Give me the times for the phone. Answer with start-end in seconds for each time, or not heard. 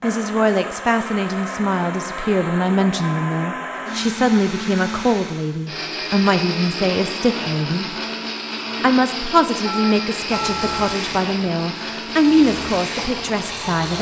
9.7-11.1.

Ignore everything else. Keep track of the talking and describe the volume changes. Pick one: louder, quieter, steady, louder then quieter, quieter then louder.
steady.